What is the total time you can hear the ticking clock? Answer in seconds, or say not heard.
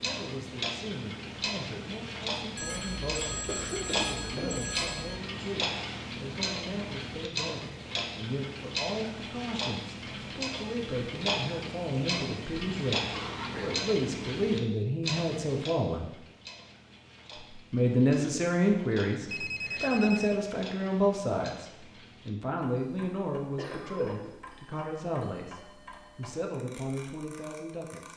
28 s.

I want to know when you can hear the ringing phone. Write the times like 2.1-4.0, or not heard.
2.5-5.2, 19.2-20.4.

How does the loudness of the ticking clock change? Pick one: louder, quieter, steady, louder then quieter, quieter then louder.
quieter.